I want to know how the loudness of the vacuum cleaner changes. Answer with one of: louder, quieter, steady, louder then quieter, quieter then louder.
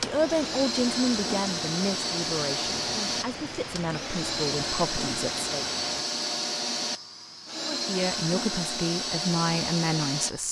steady.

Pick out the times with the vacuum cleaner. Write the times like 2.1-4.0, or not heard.
0.0-10.4.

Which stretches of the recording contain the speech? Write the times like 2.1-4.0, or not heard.
0.0-5.7, 7.6-10.4.